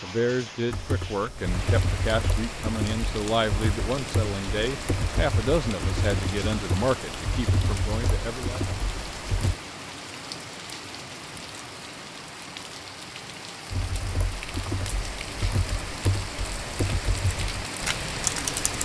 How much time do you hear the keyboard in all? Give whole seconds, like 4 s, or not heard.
14 s.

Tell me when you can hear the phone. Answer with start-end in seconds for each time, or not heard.
not heard.